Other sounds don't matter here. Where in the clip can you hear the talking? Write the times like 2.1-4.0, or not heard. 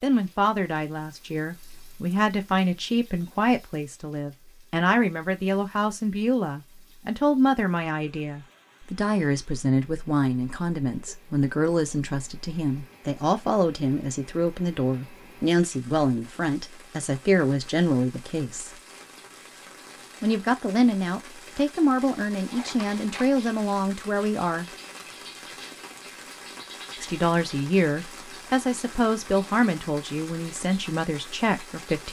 0.0-18.7, 20.2-24.6, 27.0-32.0.